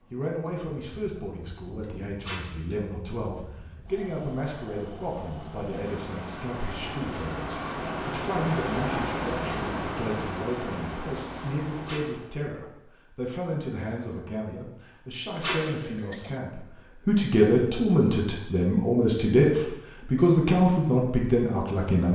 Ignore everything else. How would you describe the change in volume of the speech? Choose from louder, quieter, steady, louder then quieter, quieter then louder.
louder.